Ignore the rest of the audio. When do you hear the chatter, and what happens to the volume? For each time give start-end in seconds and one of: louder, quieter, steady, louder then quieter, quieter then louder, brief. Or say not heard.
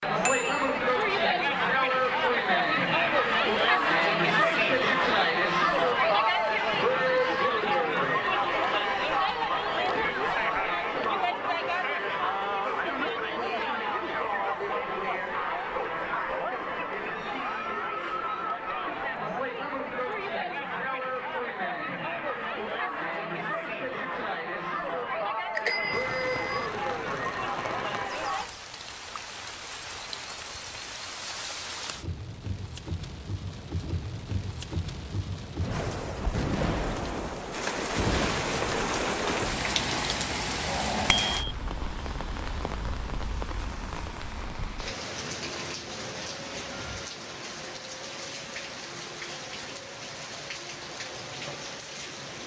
0.0-28.5 quieter.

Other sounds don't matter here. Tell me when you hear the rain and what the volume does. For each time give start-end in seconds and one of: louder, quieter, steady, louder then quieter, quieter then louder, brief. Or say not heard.
25.9-52.4 louder then quieter.